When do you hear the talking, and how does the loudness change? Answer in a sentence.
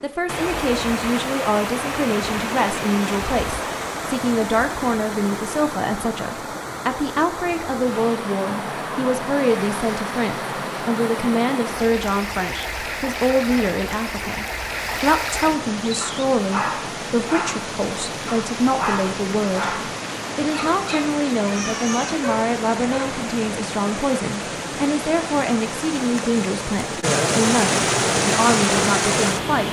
You can hear the talking from 0.0 to 29.6 s, at a steady volume.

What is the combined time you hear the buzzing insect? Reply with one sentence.
You can't hear the buzzing insect here.